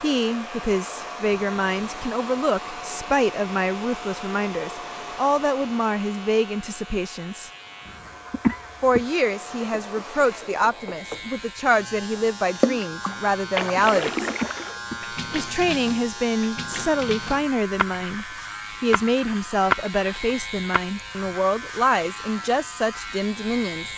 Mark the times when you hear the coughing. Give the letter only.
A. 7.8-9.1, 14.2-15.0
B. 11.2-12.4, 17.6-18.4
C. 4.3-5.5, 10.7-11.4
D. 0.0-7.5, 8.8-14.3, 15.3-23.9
A.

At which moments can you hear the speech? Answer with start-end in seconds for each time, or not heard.
0.0-7.5, 8.8-14.3, 15.3-23.9.